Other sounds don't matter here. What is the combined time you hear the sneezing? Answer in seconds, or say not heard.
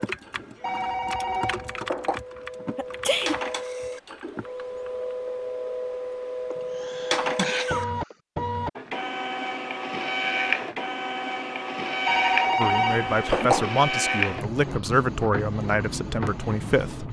3 s.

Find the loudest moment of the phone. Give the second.
13 s.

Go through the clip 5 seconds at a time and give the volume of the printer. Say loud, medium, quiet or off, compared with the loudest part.
medium, loud, loud, medium.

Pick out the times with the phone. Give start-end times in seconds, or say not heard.
0.6-2.2, 12.1-13.7.